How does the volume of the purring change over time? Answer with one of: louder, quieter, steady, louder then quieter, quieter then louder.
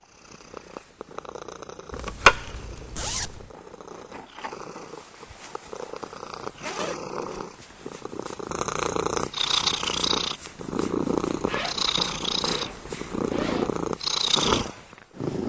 louder.